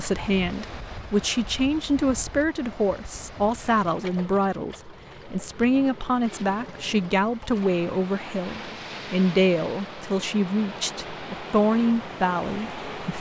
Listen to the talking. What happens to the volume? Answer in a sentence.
The volume of the talking stays about the same.